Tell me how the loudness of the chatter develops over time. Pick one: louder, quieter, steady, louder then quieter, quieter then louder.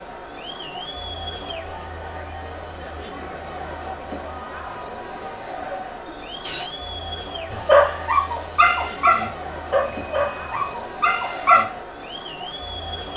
steady.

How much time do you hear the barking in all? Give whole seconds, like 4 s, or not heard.
4 s.